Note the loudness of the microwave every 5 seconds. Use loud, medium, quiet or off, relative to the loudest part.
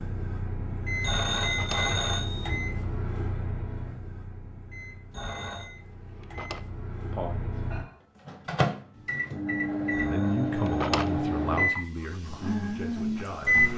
medium, medium, loud.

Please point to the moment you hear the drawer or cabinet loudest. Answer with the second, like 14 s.
11 s.